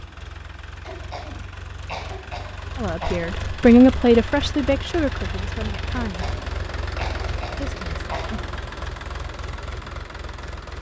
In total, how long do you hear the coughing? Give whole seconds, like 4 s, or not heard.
5 s.